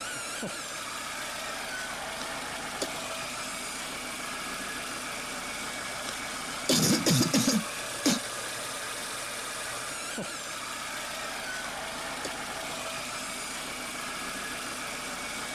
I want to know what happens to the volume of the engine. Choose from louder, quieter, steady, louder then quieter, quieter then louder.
steady.